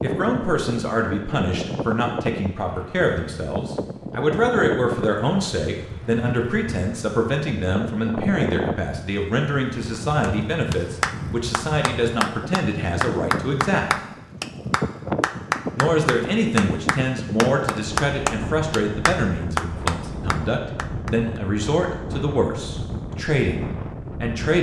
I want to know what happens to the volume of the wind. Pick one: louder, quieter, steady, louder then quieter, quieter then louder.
steady.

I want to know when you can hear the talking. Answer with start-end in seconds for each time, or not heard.
0.0-13.9, 15.8-24.5.